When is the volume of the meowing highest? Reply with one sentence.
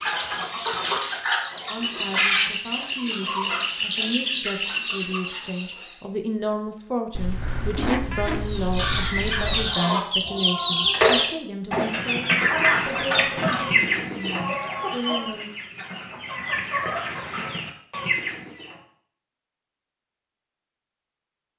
The loudest moment of the meowing is at 8 seconds.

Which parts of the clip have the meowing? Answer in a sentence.
The meowing can be heard from 7.1 to 9.8 s.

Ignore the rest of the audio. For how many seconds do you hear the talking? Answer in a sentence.
The talking can be heard for 14 seconds in total.